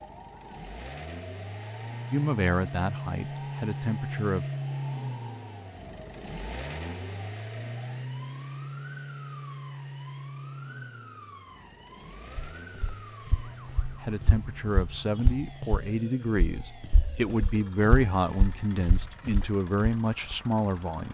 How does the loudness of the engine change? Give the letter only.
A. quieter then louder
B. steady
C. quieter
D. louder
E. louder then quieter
C.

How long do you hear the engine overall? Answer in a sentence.
You can hear the engine for 21 seconds altogether.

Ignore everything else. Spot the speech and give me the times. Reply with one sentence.
The speech can be heard from 2.1 to 4.5 s and from 14.0 to 21.0 s.